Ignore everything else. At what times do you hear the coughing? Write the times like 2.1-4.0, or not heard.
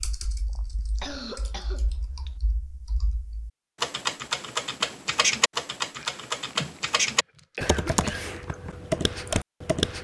1.0-2.4, 6.0-8.3.